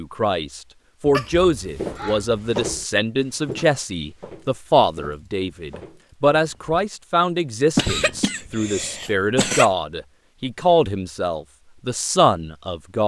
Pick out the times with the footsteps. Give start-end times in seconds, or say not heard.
1.6-6.8.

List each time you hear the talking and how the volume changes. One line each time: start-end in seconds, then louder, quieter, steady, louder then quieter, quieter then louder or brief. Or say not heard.
0.0-13.0 steady.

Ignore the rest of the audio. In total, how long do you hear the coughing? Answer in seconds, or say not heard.
4 s.